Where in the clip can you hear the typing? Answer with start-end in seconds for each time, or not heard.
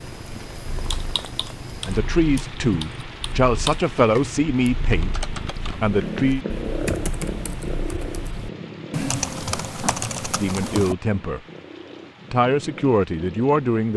0.8-10.9.